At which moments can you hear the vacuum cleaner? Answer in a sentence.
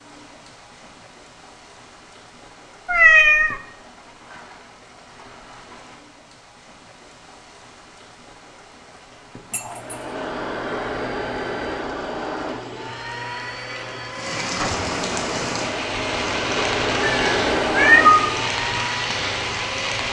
You can hear the vacuum cleaner from 9.7 to 20.0 s.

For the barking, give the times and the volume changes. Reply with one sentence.
You can't hear the barking here.